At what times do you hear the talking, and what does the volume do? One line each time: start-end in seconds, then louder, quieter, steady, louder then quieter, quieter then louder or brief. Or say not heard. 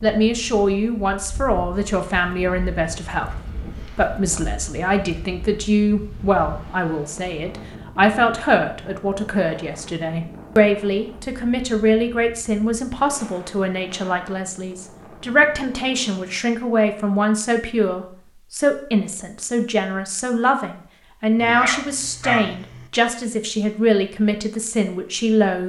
0.0-25.6 steady.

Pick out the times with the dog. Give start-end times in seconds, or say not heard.
21.4-22.9.